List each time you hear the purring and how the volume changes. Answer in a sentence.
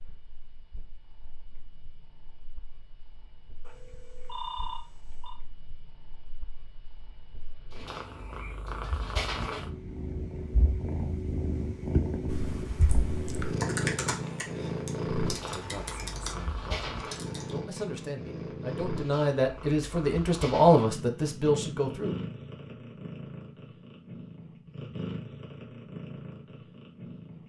You can hear the purring from 0.0 to 27.4 s, getting louder then quieter.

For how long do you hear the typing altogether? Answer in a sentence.
The typing can be heard for 5 seconds in total.